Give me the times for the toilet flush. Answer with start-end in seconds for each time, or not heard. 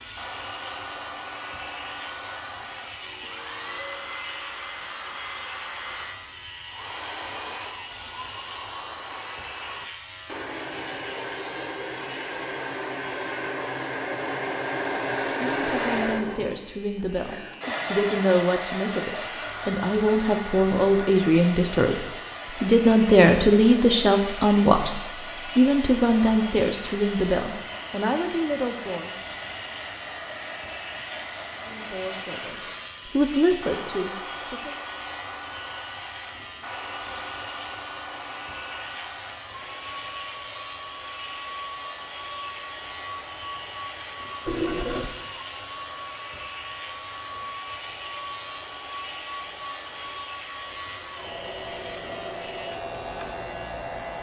44.5-45.1.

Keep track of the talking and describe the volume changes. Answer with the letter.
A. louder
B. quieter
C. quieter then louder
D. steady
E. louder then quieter
E.